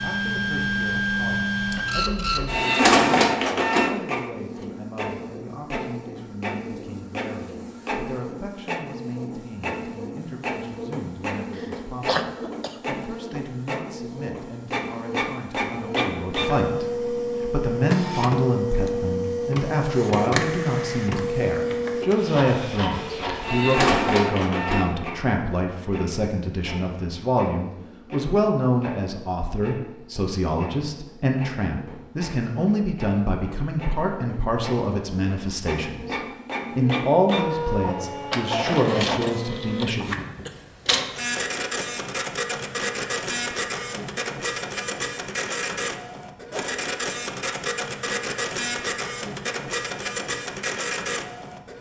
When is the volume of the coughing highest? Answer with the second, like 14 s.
12 s.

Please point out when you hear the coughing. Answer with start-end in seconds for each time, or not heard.
11.6-13.1, 39.2-40.6.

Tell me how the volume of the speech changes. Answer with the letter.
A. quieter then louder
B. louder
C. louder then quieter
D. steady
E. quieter
B.